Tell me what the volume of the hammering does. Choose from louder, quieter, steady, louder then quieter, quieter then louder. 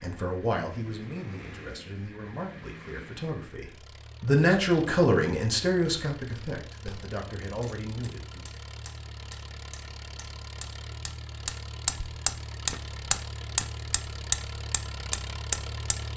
louder.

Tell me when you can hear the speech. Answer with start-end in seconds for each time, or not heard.
0.0-8.4.